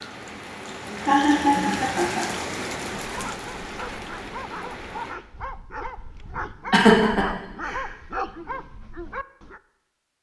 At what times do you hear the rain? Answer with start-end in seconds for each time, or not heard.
0.0-5.2.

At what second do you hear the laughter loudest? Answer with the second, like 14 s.
7 s.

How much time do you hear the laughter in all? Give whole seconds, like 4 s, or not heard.
2 s.